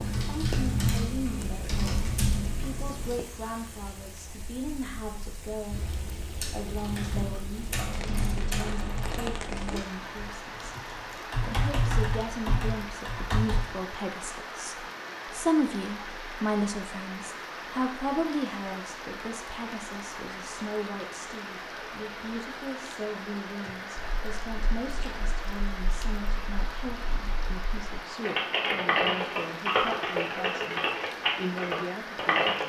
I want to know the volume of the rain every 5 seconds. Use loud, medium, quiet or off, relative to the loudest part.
medium, loud, loud, loud, loud, loud, loud.